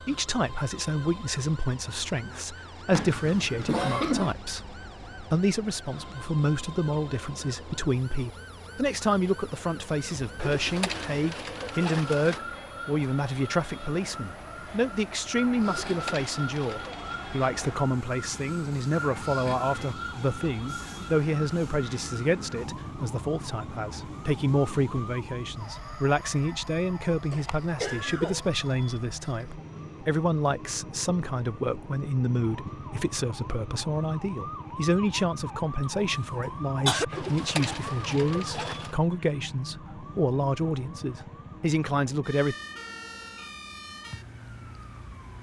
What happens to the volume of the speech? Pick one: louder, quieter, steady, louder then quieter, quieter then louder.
steady.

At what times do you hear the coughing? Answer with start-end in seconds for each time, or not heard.
2.9-4.3, 27.3-28.5, 36.3-37.0.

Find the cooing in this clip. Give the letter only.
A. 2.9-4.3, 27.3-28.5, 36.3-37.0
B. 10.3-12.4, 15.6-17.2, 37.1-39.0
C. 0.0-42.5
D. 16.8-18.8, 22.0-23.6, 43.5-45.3
B.